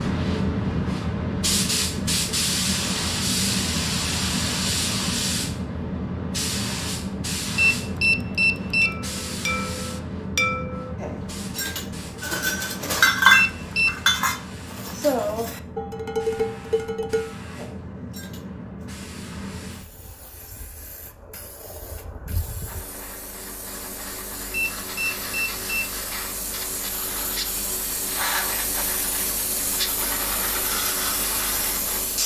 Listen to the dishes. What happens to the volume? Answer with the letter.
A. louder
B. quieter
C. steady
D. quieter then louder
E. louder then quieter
E.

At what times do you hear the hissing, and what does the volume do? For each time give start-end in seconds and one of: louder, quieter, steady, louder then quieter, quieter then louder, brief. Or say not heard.
0.0-32.2 quieter then louder.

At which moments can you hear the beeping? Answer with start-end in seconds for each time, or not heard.
7.5-9.0, 13.3-14.0, 24.5-25.9.